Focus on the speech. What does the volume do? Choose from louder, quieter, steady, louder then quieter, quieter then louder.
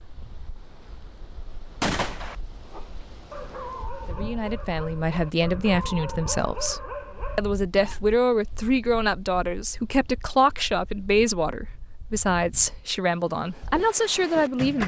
steady.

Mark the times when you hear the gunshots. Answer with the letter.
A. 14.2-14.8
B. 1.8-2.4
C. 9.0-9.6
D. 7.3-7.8
B.